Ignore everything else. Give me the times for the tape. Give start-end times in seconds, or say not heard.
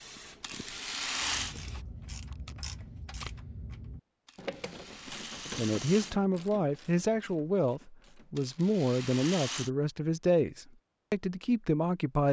2.1-3.5.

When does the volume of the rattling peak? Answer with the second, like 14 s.
1 s.